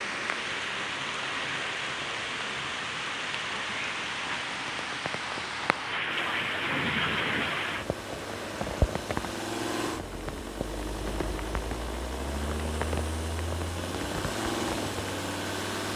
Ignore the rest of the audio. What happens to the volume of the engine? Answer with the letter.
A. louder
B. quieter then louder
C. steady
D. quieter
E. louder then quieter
A.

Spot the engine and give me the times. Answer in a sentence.
The engine can be heard from 6.0 to 15.9 s.